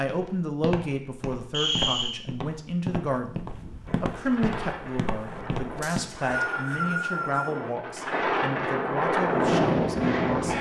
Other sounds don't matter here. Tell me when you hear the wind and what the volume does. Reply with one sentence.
You can hear the wind from 3.5 to 10.5 s, getting louder.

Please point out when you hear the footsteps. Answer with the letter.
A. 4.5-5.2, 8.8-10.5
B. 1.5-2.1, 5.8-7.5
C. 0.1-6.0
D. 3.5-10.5
C.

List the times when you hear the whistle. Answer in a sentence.
The whistle can be heard from 1.5 to 2.1 s and from 5.8 to 7.5 s.